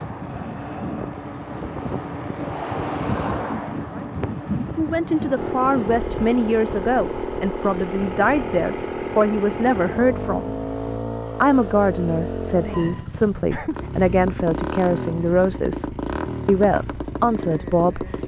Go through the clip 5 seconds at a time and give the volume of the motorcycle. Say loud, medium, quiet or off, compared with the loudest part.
off, loud, loud, loud.